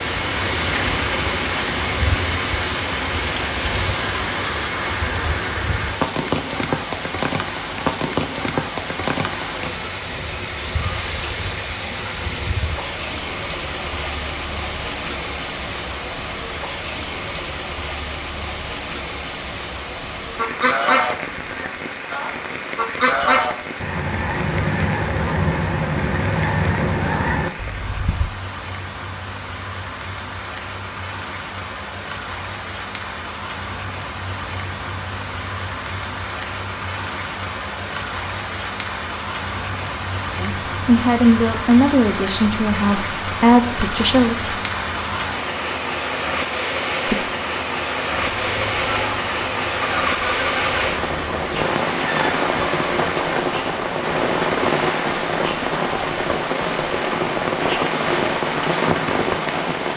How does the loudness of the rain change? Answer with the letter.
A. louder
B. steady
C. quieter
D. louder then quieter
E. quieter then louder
E.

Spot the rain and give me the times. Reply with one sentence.
The rain can be heard from 0.0 to 59.9 s.